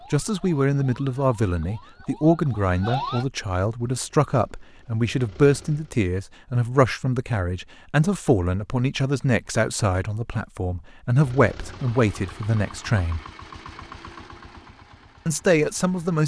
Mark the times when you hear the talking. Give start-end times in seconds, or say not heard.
0.1-13.2, 15.2-16.2.